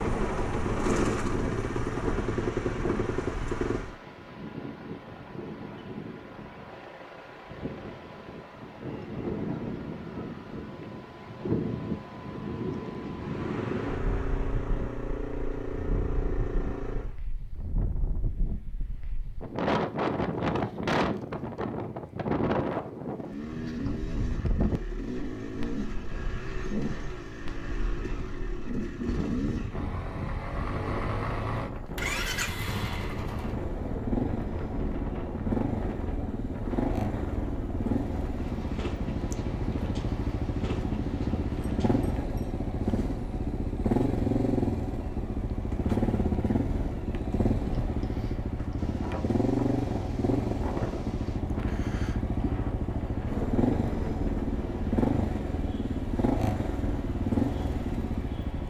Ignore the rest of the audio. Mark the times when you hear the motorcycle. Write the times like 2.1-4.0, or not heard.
0.0-4.0, 13.2-17.1, 23.1-58.6.